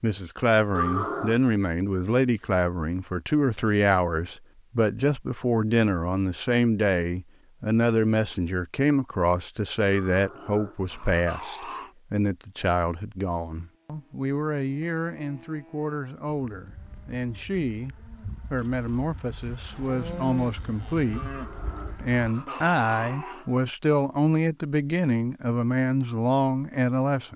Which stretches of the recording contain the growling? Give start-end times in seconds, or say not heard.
0.7-1.4, 10.1-11.9, 21.1-23.6.